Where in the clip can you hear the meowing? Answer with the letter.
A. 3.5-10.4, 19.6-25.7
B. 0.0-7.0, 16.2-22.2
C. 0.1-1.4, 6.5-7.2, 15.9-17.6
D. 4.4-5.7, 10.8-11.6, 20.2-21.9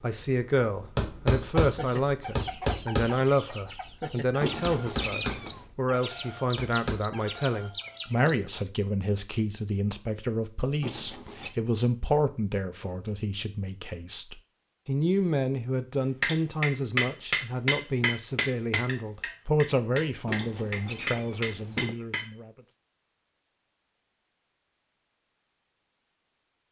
D.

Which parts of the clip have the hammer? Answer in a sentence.
The hammer can be heard from 0.0 to 7.0 s and from 16.2 to 22.2 s.